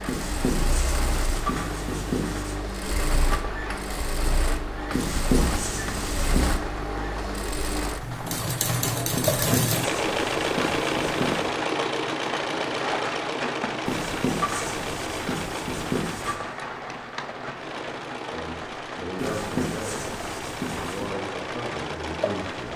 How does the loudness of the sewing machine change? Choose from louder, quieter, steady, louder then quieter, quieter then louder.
louder then quieter.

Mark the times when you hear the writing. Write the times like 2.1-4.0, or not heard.
0.1-2.6, 4.9-6.5, 9.1-11.5, 13.8-16.4, 19.1-21.1.